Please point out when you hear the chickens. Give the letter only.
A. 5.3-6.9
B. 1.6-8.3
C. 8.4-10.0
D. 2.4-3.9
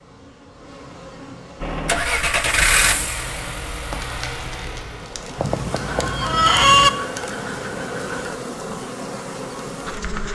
A.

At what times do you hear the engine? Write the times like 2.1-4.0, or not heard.
1.6-8.3.